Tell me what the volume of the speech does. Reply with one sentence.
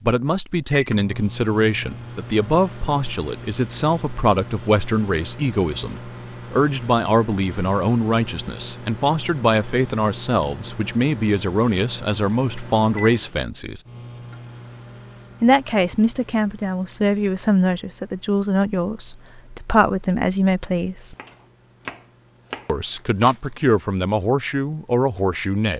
The loudness of the speech stays about the same.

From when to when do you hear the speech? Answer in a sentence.
The speech can be heard from 0.0 to 13.8 s, from 15.4 to 21.1 s and from 22.6 to 25.7 s.